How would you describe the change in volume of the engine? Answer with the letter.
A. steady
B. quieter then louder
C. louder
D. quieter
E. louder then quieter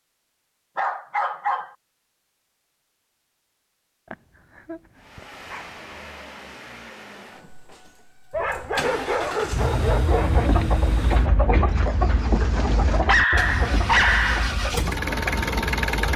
C.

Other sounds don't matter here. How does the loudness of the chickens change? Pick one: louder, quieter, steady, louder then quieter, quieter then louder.
quieter.